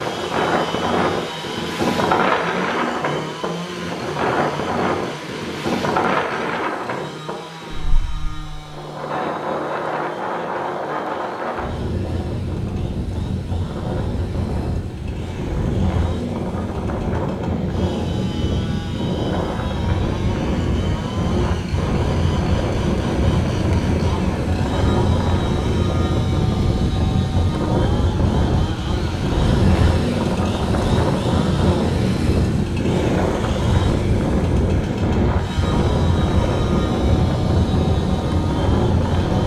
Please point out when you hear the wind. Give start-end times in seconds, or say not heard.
0.0-39.4.